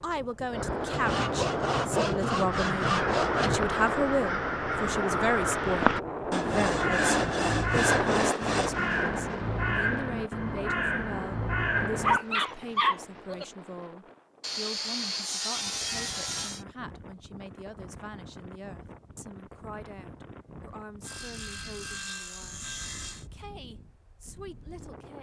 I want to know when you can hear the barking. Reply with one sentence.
The barking can be heard from 12.0 to 13.4 s.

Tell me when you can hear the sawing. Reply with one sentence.
The sawing can be heard from 0.9 to 3.8 s, from 6.3 to 8.7 s, from 14.4 to 16.6 s and from 21.0 to 23.2 s.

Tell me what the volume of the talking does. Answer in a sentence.
The loudness of the talking goes down.